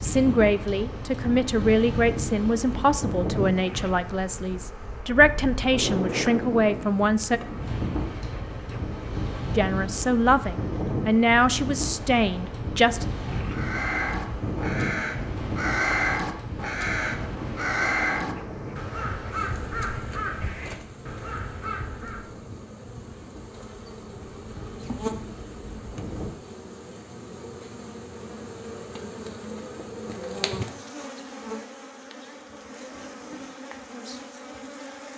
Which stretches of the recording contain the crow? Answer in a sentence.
You can hear the crow from 13.4 to 22.4 s.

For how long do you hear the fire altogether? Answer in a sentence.
The fire can't be heard in this clip.